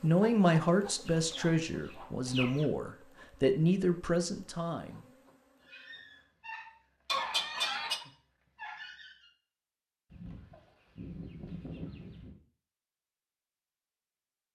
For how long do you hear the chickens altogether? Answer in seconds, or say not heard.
5 s.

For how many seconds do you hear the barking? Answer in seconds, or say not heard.
4 s.